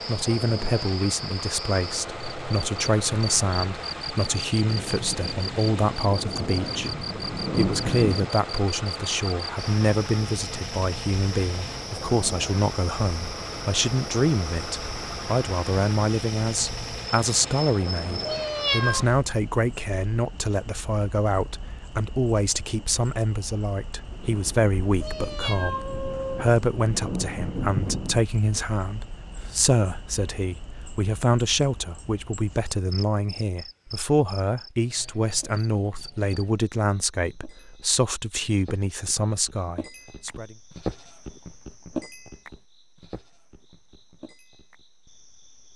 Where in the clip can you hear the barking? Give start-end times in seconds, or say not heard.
not heard.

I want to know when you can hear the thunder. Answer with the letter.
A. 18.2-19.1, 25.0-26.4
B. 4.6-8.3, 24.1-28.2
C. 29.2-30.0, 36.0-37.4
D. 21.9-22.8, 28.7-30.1
B.